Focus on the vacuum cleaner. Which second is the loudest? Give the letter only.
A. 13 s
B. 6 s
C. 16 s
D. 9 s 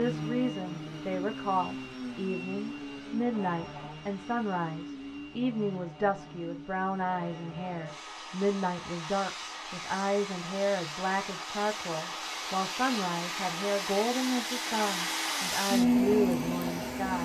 C.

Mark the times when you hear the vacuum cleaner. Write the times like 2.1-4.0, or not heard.
0.0-17.2.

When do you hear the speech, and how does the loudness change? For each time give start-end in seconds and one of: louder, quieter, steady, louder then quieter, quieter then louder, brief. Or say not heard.
0.0-17.2 steady.